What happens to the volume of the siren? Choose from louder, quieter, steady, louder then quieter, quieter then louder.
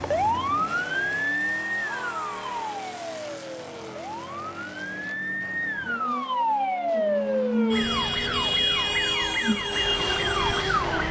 quieter then louder.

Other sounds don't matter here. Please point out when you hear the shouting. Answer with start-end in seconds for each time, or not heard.
1.8-2.7.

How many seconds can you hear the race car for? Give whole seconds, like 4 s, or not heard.
11 s.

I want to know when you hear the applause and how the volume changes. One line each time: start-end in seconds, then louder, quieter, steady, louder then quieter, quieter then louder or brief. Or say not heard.
not heard.